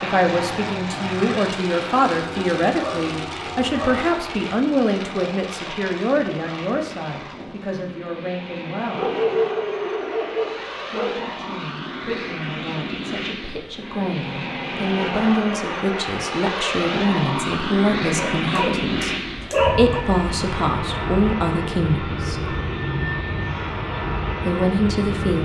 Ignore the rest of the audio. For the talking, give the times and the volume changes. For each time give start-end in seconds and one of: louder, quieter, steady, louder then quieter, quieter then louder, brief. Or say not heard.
0.0-9.1 quieter
10.9-22.6 louder
24.4-25.3 brief.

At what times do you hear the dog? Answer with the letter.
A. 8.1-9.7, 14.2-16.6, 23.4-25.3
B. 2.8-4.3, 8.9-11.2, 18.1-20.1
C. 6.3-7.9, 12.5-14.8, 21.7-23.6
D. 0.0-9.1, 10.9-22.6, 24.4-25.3
B.